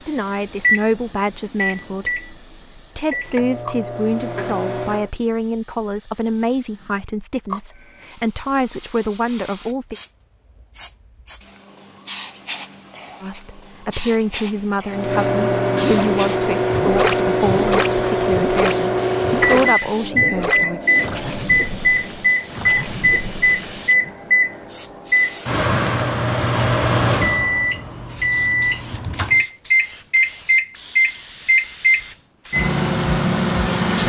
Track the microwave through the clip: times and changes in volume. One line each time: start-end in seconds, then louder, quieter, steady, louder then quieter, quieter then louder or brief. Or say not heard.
0.1-5.1 quieter then louder
14.9-34.0 steady.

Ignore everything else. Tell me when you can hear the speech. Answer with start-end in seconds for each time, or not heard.
0.1-9.9, 13.2-20.8.